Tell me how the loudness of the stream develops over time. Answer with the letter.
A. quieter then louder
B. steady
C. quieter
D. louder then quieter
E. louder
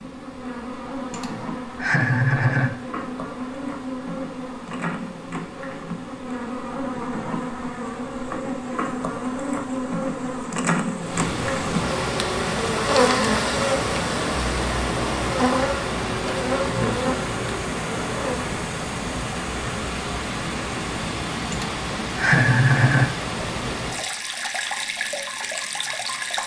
E.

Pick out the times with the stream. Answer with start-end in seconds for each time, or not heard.
0.0-26.4.